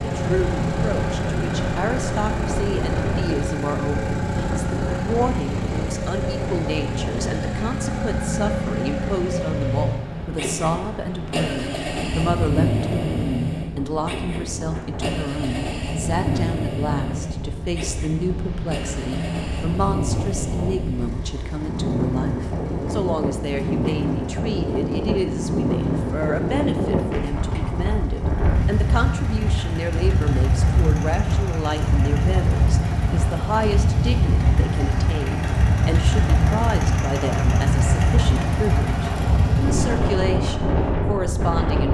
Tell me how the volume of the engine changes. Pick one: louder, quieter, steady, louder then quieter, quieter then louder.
quieter then louder.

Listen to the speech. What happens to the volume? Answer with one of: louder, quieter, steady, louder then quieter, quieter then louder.
steady.